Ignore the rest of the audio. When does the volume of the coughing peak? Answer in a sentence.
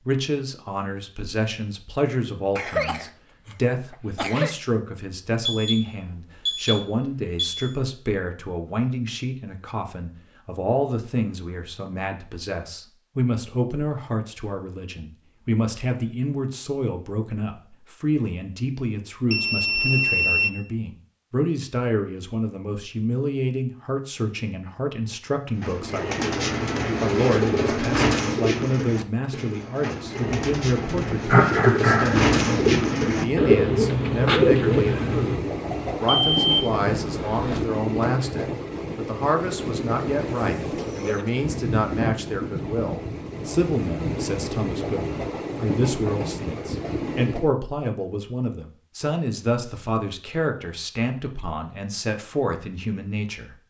The volume of the coughing peaks at 32 seconds.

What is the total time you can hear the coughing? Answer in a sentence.
You can hear the coughing for 3 seconds altogether.